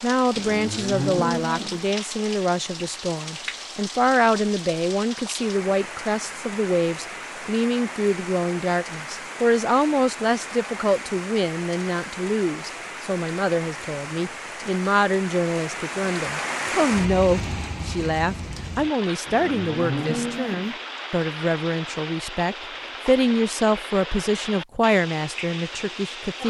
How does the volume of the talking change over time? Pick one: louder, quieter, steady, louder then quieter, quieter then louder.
steady.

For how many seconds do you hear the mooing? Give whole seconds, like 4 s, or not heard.
3 s.